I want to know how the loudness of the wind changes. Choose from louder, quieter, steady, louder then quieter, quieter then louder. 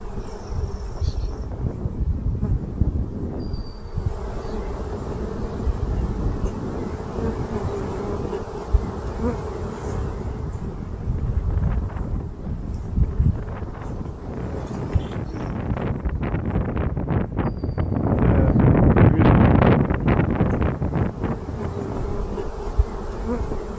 louder.